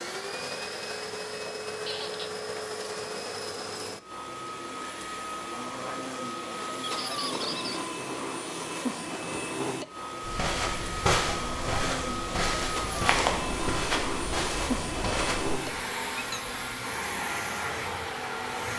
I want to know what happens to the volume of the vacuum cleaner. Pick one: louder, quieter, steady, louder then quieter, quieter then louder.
steady.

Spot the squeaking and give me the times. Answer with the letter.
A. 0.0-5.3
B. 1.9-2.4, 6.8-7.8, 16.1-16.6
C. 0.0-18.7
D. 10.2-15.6
B.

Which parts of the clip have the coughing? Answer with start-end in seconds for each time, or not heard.
not heard.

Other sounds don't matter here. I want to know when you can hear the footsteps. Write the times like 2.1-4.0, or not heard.
10.2-15.6.